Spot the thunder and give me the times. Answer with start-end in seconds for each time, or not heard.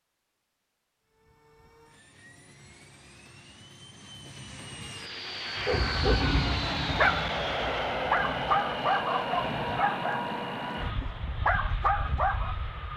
5.5-9.8.